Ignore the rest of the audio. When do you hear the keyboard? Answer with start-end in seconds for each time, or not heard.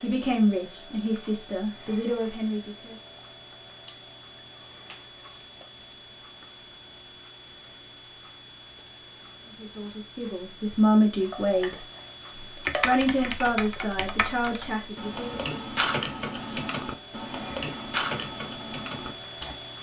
12.3-19.6.